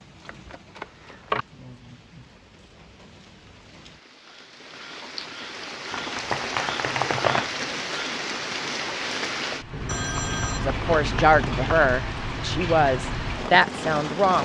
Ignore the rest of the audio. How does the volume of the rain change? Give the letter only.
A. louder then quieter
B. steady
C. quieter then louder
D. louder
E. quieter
D.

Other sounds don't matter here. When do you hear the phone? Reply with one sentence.
The phone can be heard from 9.8 to 10.6 s.